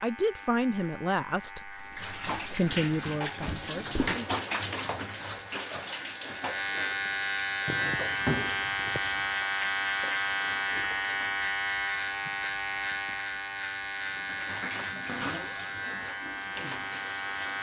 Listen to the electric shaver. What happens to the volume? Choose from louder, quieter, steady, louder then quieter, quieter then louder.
louder then quieter.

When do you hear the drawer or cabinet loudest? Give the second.
8 s.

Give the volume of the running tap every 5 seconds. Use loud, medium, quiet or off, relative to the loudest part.
loud, medium, medium, medium.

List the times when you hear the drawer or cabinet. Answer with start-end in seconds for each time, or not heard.
3.5-4.2, 7.7-9.2, 15.1-15.7.